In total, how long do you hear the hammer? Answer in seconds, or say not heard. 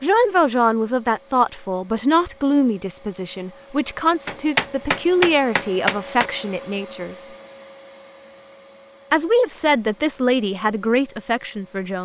2 s.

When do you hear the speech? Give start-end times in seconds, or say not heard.
0.0-7.2, 9.1-11.9.